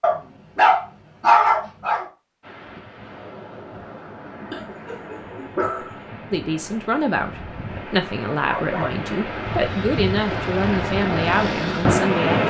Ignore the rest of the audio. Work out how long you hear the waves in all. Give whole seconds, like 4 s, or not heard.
10 s.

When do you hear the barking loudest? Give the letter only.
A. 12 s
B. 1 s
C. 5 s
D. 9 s
B.